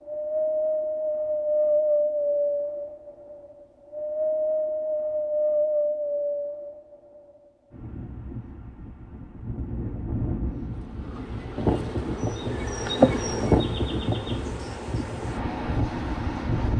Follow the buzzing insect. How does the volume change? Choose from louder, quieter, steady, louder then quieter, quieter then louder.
louder then quieter.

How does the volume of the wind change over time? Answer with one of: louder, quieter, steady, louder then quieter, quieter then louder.
quieter then louder.